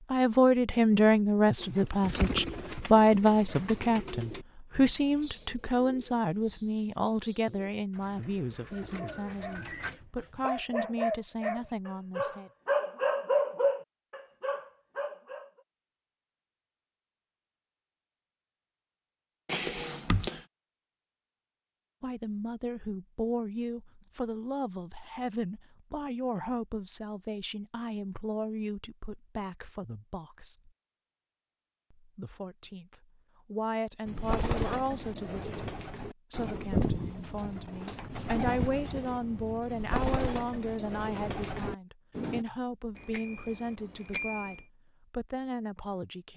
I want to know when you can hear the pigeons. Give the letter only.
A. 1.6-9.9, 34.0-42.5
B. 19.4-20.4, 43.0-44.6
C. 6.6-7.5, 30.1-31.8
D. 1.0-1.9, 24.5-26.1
A.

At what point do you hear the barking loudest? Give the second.
14 s.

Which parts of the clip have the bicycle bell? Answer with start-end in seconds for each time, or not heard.
19.4-20.4, 43.0-44.6.